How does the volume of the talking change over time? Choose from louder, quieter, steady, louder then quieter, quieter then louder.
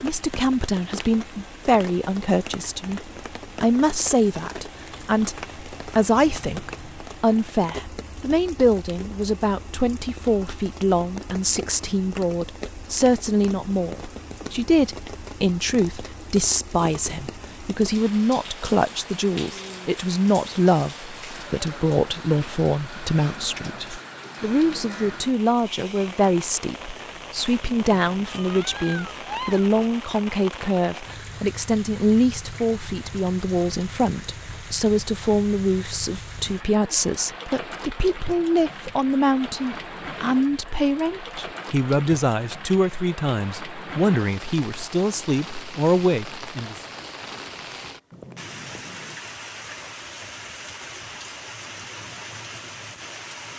steady.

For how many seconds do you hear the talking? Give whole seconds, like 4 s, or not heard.
47 s.